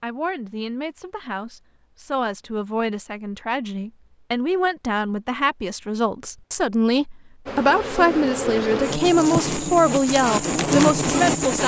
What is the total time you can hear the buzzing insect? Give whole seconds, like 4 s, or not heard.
4 s.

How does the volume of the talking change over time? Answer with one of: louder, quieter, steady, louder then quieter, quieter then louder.
louder.